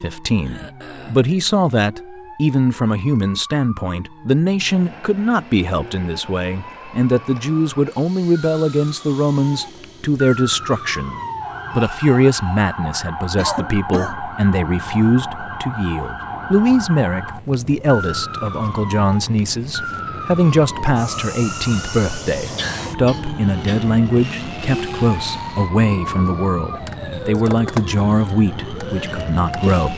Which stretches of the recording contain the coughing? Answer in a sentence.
The coughing can be heard from 0.4 to 1.3 s, from 13.3 to 14.2 s and from 22.6 to 23.9 s.